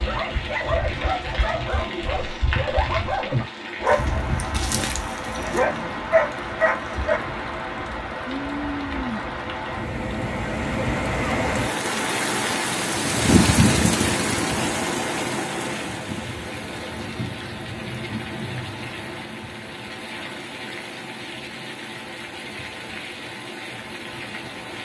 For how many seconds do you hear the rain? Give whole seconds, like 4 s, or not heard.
25 s.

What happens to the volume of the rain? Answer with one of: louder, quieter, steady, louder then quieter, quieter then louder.
louder then quieter.